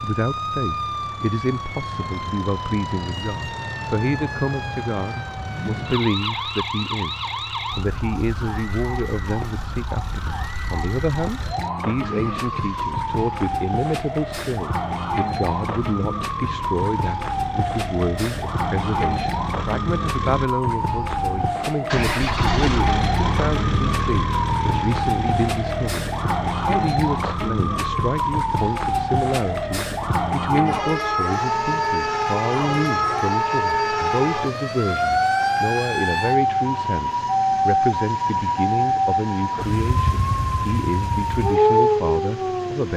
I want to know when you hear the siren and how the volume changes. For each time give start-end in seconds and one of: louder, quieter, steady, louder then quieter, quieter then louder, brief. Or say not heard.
0.0-42.9 louder.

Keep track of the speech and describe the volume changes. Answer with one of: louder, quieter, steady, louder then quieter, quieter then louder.
steady.